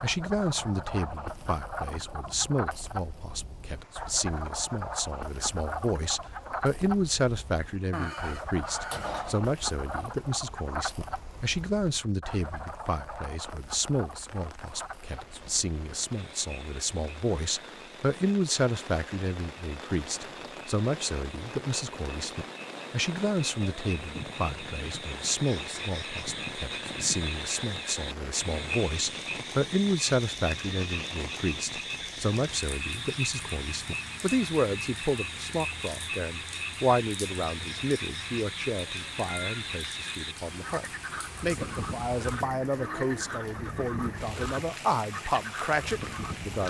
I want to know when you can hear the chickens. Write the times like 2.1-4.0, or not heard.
7.9-9.5.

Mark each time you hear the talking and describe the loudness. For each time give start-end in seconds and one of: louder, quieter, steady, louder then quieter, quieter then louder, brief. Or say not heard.
0.0-46.6 steady.